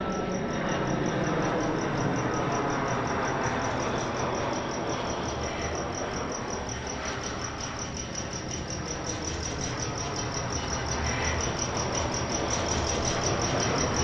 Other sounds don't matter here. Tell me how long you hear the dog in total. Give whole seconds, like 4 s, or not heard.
not heard.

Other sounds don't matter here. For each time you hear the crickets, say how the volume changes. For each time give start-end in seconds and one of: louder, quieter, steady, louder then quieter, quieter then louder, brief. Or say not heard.
0.0-13.9 louder.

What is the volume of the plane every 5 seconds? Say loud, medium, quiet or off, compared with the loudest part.
loud, medium, loud.